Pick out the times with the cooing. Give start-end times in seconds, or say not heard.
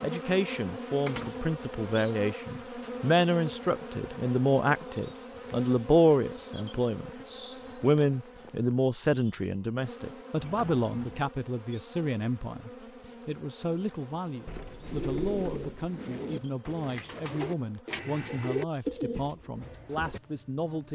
14.8-20.2.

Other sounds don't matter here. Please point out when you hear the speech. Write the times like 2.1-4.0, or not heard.
0.0-20.9.